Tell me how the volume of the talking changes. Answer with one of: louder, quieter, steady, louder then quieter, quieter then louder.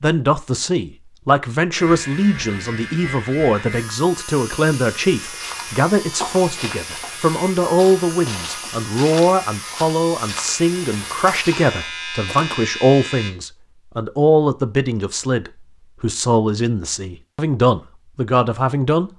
steady.